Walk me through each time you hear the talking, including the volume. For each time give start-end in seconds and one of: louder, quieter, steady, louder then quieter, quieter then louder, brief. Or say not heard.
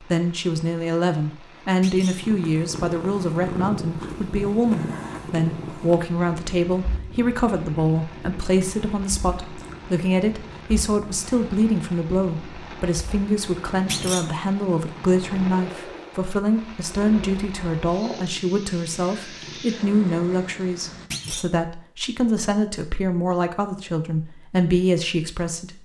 0.0-25.8 steady.